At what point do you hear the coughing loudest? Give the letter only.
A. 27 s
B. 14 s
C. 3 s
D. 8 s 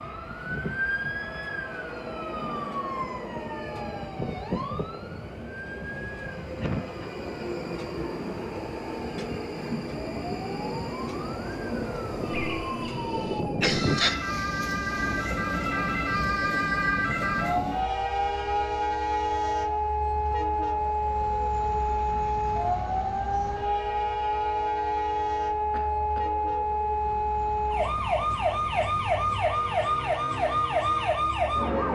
B.